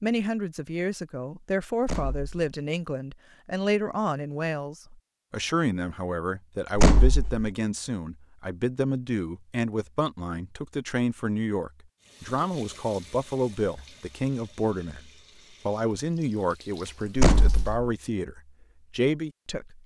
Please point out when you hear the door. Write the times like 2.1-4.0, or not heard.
1.8-2.4, 6.8-7.5, 17.1-17.9.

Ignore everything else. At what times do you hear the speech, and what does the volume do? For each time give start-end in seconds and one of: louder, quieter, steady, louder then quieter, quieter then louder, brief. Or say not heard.
0.0-19.8 steady.